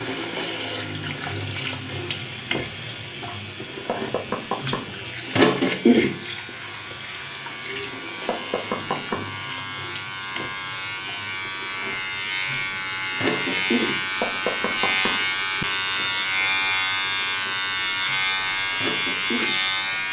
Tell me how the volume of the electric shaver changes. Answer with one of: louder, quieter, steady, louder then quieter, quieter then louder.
louder.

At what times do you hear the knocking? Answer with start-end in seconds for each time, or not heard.
3.9-5.0, 8.2-9.3, 14.2-15.2.